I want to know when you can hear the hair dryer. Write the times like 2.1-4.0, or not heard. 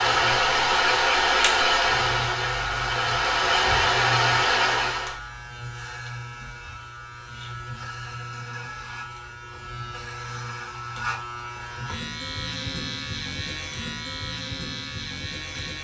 0.0-5.2.